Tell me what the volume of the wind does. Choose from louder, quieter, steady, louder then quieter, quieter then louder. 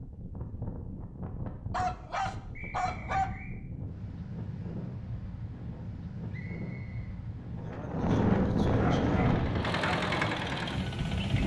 louder.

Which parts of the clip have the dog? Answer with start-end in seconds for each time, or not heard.
1.7-3.3, 8.8-9.9.